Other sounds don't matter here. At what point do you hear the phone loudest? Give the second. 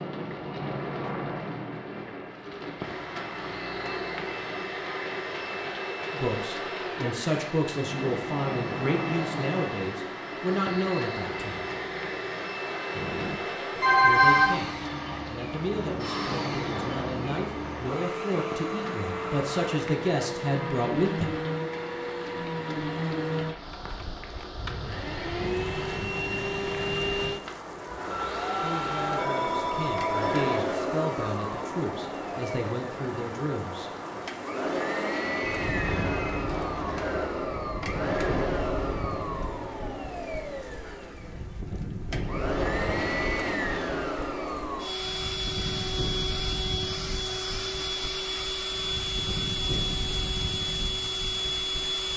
14 s.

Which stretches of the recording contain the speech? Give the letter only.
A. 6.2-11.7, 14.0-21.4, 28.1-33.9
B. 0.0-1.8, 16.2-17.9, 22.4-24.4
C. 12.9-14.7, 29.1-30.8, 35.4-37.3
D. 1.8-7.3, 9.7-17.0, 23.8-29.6
A.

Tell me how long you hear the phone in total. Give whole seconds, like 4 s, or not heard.
5 s.